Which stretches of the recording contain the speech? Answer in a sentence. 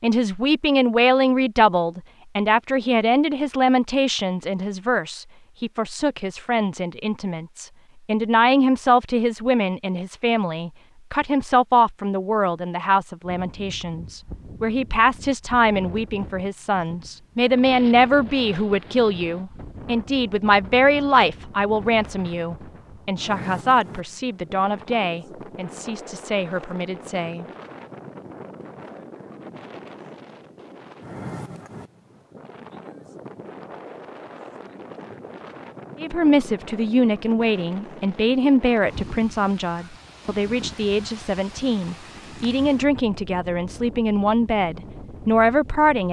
You can hear the speech from 0.0 to 27.4 s and from 36.0 to 46.0 s.